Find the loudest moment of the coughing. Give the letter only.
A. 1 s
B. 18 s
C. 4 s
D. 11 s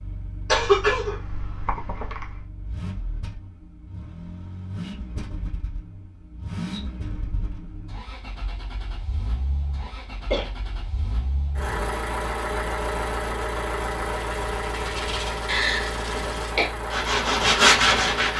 A.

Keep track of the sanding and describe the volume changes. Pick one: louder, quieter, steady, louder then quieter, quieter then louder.
louder.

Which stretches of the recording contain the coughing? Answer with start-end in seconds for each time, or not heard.
0.5-2.5, 9.8-10.5, 15.4-16.7.